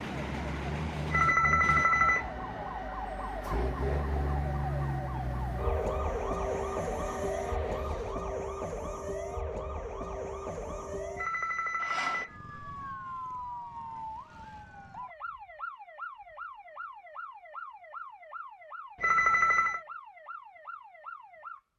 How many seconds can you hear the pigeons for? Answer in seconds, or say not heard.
not heard.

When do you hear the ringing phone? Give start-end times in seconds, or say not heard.
1.1-2.3, 11.2-12.3, 19.0-19.8.